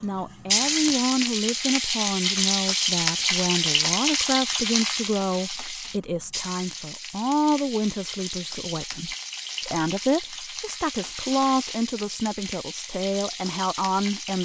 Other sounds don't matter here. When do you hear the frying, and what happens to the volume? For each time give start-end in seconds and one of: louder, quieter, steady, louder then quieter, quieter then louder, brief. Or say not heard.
0.0-14.3 quieter.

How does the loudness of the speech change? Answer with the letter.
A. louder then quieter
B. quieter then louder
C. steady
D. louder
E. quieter
C.